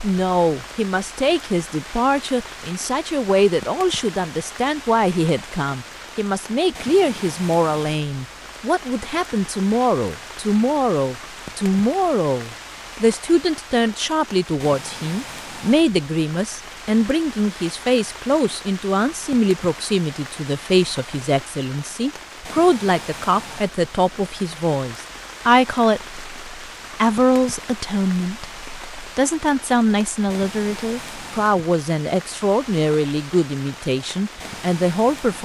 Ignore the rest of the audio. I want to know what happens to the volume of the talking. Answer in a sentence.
The loudness of the talking stays about the same.